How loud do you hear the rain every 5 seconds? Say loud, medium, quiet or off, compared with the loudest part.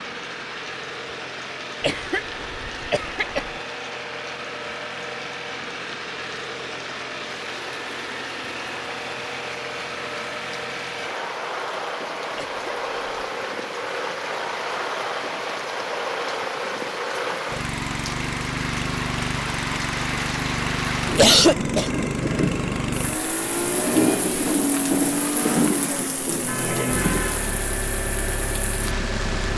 quiet, quiet, medium, medium, loud, loud.